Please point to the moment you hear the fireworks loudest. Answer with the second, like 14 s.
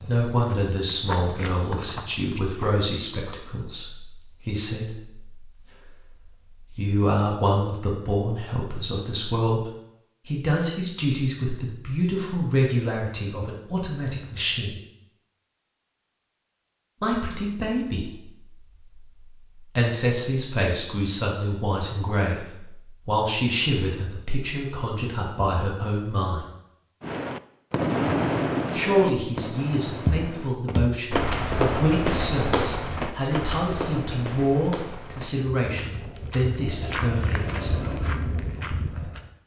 28 s.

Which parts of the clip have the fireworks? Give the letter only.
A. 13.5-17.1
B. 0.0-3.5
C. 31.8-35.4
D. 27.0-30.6
D.